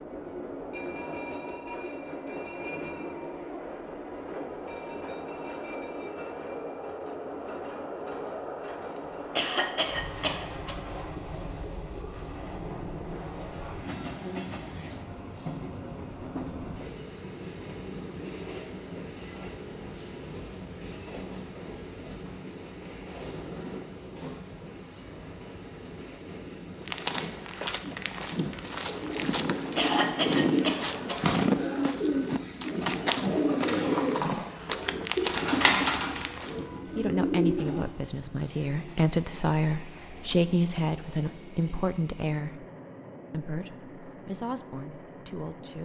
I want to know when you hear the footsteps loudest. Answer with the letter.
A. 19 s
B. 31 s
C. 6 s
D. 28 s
B.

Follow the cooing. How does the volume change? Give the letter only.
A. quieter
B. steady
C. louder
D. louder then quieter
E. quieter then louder
B.